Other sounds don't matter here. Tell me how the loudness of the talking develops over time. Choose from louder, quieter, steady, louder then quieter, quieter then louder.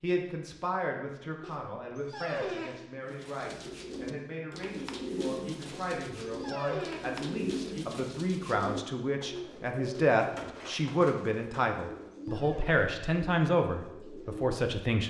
louder.